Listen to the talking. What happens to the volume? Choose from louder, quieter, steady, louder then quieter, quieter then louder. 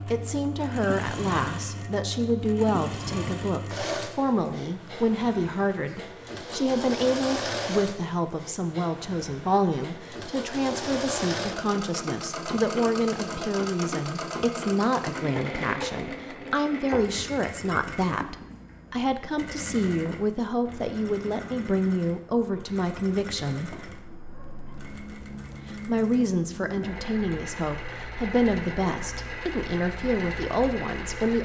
steady.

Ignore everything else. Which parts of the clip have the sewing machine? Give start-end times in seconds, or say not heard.
0.0-31.4.